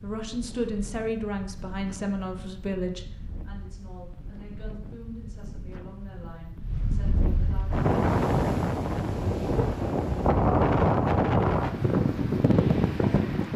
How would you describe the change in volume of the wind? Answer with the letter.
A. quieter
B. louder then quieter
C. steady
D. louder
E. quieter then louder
D.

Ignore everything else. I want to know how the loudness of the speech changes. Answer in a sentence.
The loudness of the speech goes down.